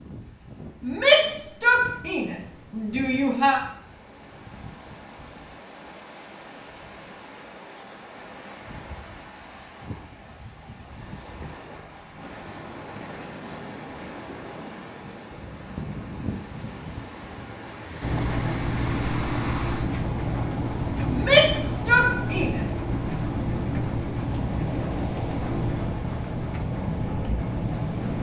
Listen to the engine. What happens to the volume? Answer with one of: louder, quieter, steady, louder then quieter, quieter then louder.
quieter.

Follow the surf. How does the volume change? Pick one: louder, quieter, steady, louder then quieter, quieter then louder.
louder.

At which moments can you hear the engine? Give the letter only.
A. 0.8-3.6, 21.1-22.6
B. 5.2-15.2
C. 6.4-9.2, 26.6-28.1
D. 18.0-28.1
D.